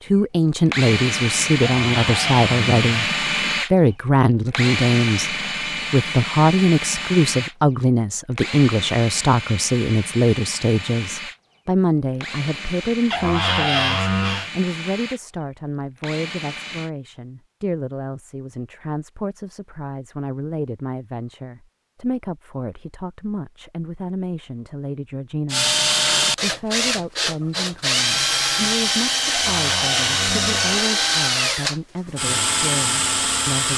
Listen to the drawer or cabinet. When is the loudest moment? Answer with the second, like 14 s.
14 s.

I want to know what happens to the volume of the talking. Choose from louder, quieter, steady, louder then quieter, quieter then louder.
quieter.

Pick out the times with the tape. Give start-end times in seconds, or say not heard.
not heard.